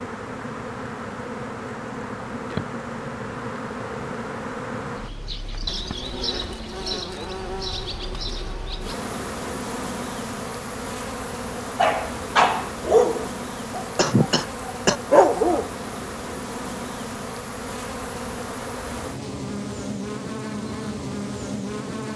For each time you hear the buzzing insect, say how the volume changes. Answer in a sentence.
You can hear the buzzing insect from 0.0 to 22.1 s, at a steady volume.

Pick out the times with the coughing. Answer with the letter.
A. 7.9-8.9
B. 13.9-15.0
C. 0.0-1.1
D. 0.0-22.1
B.